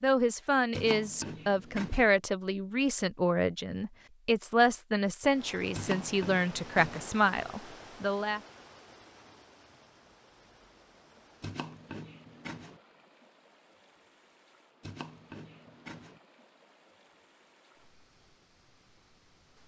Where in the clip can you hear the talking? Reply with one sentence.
You can hear the talking from 0.0 to 8.4 s.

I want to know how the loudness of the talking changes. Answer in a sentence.
The loudness of the talking stays about the same.